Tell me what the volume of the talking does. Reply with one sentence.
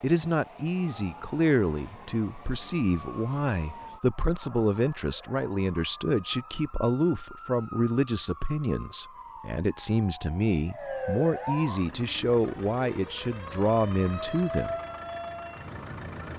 The volume of the talking stays about the same.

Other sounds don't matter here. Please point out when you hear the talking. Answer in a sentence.
You can hear the talking from 0.0 to 14.8 s.